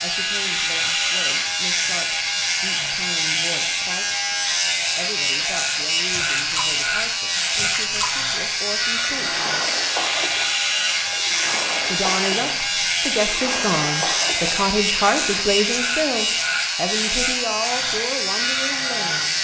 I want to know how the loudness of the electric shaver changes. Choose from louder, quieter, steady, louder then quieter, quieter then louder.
steady.